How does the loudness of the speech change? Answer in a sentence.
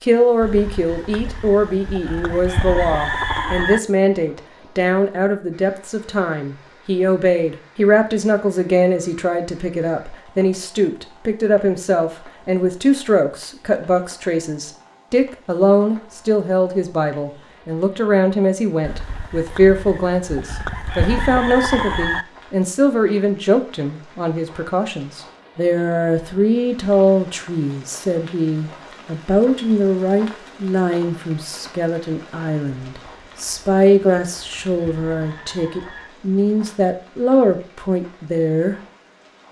The loudness of the speech stays about the same.